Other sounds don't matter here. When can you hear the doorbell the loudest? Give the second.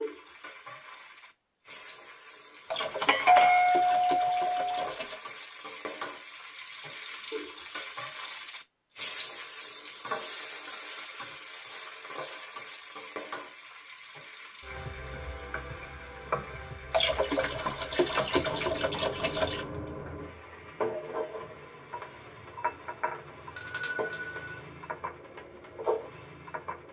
3 s.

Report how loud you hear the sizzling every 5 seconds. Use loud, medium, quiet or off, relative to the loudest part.
medium, loud, loud, loud, loud, loud.